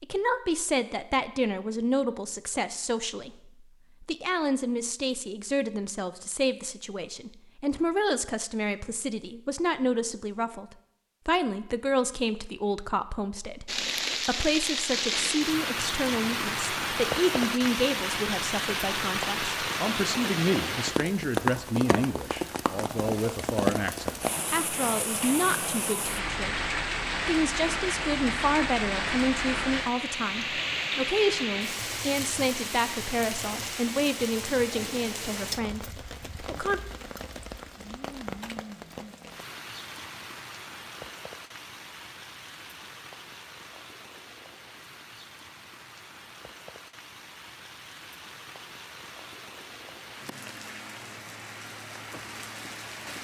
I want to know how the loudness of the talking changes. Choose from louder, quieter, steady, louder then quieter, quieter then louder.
steady.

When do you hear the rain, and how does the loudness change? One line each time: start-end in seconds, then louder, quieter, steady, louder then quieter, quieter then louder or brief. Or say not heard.
13.7-53.2 quieter.